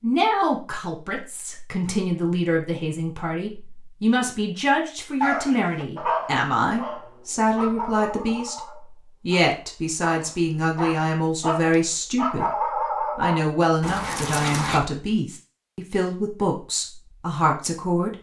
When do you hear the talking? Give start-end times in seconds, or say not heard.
0.0-8.6, 9.2-12.5, 13.2-18.1.